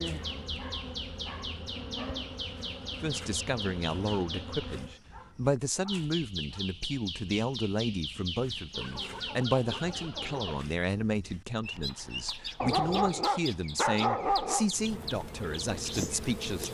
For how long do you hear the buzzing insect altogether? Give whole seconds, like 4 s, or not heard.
7 s.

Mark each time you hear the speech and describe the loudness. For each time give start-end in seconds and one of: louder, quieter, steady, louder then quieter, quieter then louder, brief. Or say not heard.
3.0-16.6 steady.